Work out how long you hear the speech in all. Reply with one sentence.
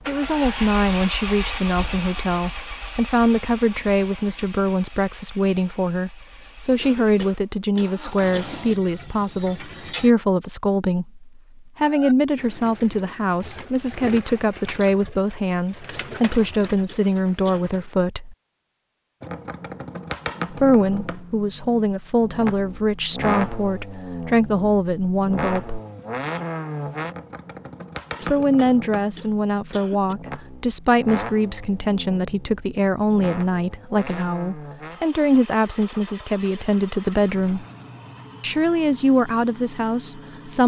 The speech can be heard for 35 seconds in total.